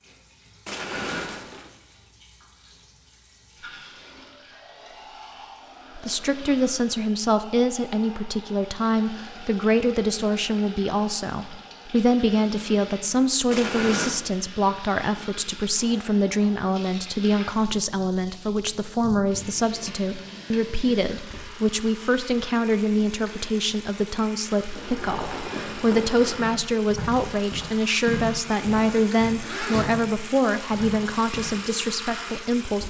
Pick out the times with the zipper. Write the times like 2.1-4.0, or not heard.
0.7-1.7, 13.5-14.2, 28.4-30.0.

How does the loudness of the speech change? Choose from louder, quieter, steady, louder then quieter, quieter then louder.
steady.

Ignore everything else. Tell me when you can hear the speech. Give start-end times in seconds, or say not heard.
6.0-32.8.